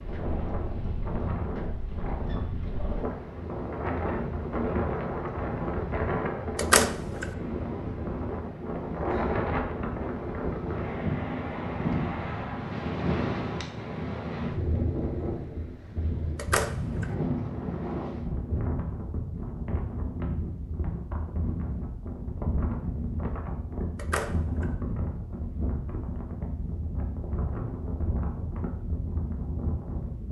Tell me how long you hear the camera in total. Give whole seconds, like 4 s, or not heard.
2 s.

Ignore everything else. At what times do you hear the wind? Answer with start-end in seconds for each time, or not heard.
0.0-30.2.